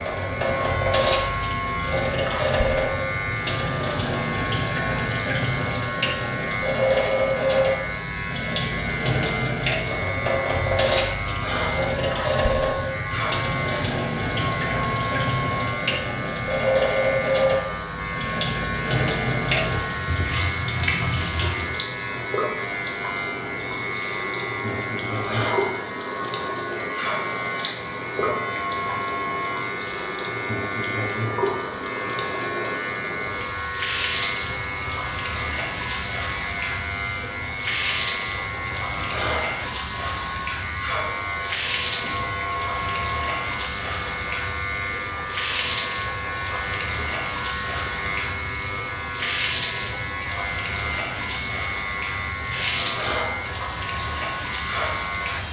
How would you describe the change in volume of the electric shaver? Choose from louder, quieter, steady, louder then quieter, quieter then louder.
steady.